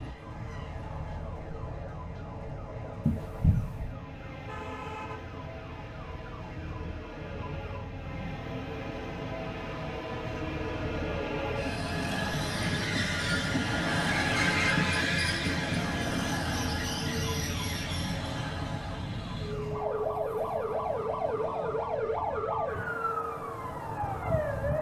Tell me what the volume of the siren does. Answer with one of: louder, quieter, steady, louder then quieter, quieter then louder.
louder.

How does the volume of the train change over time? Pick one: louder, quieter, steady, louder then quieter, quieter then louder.
louder then quieter.